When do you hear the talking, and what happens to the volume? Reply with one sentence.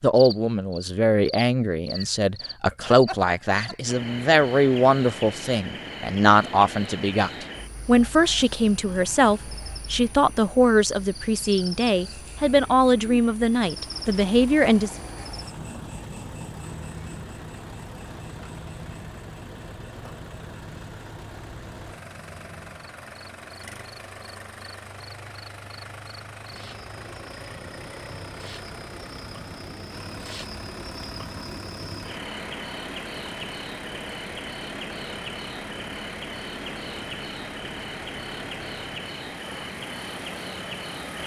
The talking can be heard from 0.0 to 14.9 s, at a steady volume.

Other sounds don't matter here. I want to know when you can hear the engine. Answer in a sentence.
You can hear the engine from 13.6 to 41.2 s.